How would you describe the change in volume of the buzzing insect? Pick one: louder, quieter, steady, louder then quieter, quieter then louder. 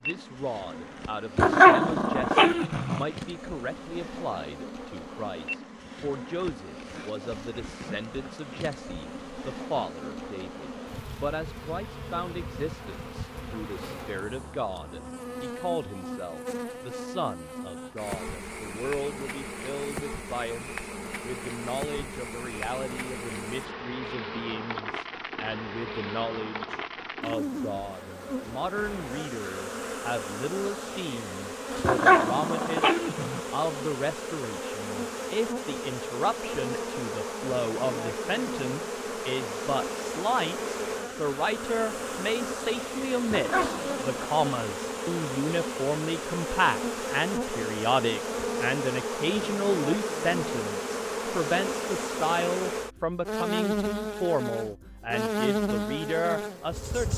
louder.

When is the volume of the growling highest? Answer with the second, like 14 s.
2 s.